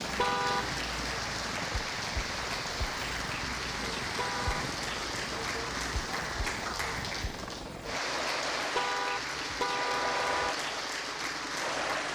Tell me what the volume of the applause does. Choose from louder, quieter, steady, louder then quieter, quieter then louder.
steady.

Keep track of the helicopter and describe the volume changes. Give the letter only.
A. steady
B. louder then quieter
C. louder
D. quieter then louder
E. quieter
A.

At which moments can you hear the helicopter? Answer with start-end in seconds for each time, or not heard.
0.0-12.1.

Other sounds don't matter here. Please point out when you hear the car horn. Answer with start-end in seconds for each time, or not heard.
0.1-0.8, 4.2-4.7, 8.8-10.6.